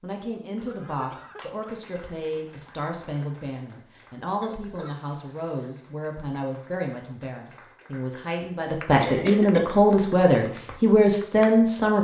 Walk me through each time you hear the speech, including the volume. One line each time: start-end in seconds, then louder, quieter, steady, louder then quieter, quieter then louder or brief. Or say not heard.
0.0-11.9 louder.